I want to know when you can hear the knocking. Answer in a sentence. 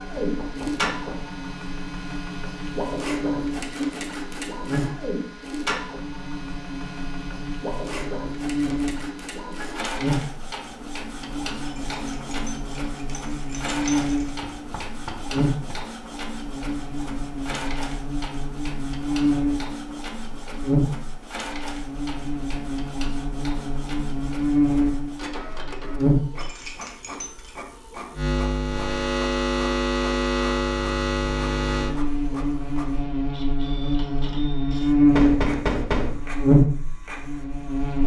The knocking can be heard from 0.1 to 1.2 s, from 14.4 to 15.8 s and from 35.1 to 36.2 s.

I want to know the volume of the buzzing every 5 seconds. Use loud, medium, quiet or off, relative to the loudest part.
quiet, quiet, medium, medium, medium, medium, medium, loud.